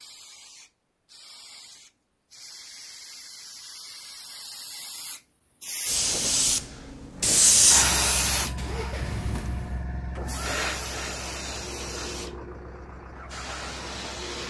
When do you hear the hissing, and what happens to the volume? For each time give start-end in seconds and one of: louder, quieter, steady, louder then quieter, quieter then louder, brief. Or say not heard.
0.0-14.4 louder then quieter.